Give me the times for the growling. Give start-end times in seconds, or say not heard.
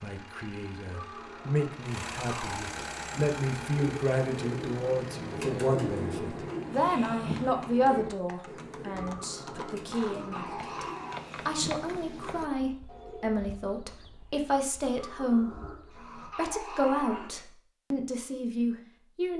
0.9-2.7, 8.9-11.2, 14.9-17.4.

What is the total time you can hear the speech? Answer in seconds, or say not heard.
19 s.